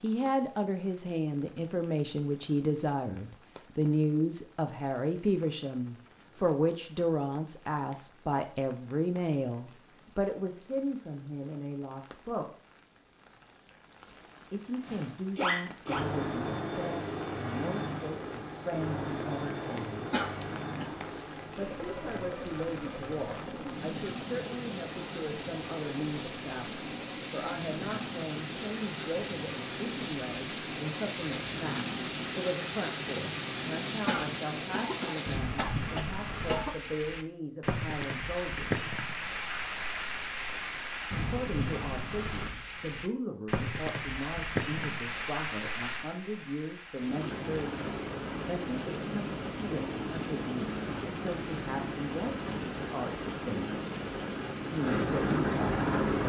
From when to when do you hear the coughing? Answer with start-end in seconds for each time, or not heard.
20.1-20.9, 34.0-36.8.